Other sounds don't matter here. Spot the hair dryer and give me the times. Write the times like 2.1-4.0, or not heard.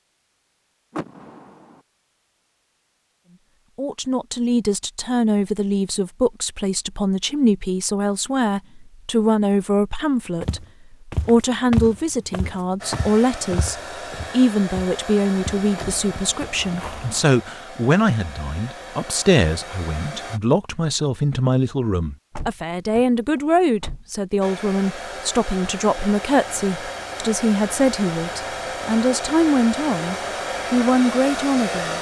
12.8-20.4, 24.4-31.9.